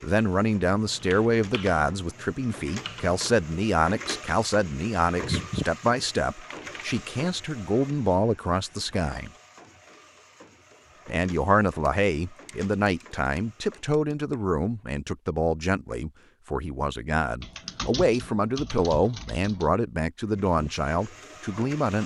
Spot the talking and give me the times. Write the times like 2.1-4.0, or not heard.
0.0-9.3, 11.1-22.0.